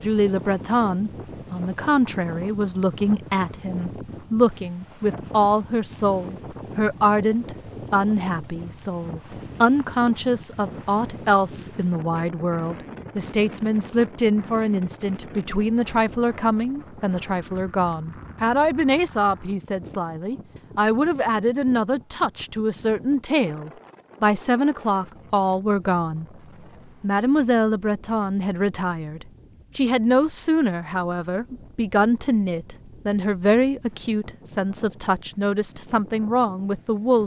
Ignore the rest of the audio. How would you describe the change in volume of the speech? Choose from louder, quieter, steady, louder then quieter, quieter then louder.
steady.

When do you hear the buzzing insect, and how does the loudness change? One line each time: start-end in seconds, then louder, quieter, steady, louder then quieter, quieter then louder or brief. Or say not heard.
not heard.